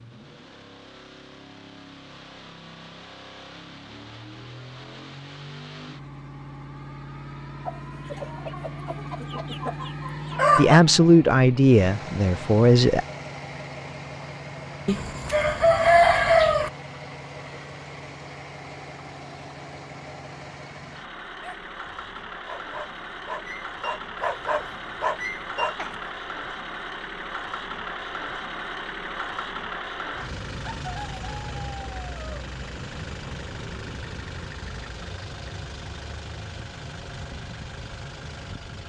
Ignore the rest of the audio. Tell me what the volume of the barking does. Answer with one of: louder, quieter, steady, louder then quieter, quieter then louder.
louder.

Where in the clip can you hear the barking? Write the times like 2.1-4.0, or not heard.
21.4-25.9.